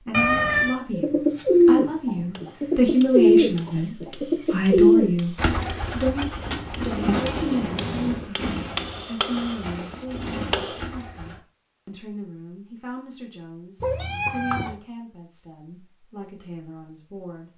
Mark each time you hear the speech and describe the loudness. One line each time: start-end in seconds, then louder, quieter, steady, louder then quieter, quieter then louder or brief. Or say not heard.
0.1-17.5 quieter.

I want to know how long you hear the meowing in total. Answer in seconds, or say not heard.
3 s.